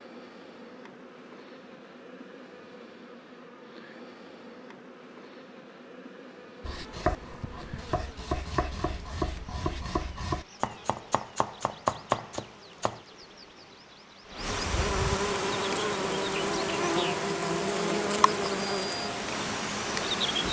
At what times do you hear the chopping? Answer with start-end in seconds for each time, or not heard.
6.6-13.0.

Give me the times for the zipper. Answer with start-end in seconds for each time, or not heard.
not heard.